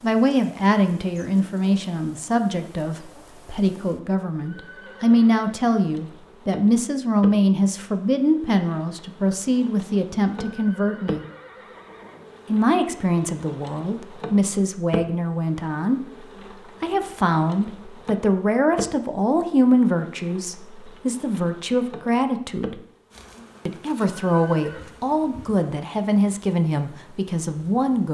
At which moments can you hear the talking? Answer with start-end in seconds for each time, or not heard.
0.0-11.2, 12.4-22.8, 23.6-28.0.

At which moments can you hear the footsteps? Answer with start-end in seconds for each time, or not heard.
not heard.